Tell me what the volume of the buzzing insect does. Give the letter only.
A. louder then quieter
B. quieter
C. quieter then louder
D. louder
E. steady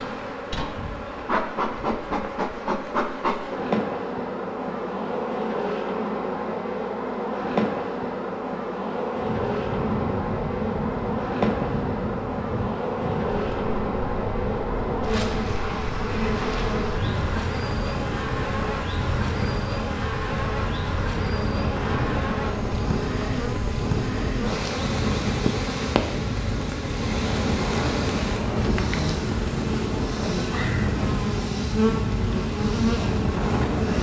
E.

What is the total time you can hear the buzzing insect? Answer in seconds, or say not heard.
34 s.